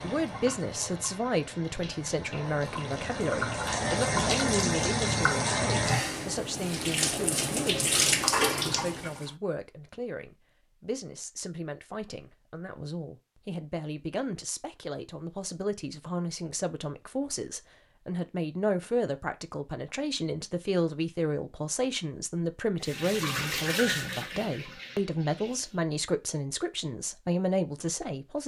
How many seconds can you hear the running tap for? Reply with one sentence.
You can hear the running tap for 12 seconds altogether.